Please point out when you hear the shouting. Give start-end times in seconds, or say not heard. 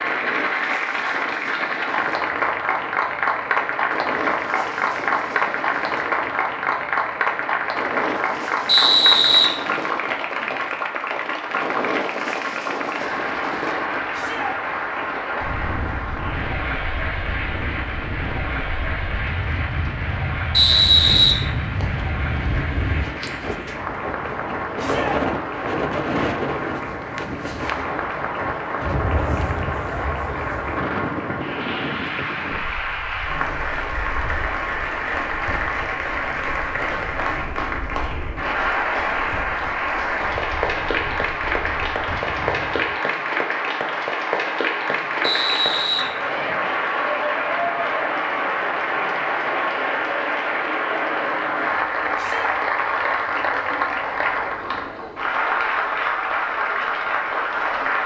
14.1-14.6, 24.8-25.2, 52.1-52.6.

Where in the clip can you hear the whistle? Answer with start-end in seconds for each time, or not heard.
8.7-9.4, 20.5-22.0, 45.2-46.0.